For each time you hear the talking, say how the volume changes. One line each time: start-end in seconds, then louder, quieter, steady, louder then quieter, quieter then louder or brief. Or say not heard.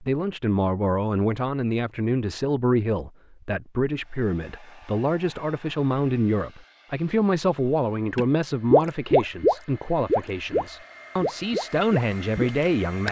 0.0-13.0 steady.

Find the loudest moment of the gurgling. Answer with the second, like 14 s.
9 s.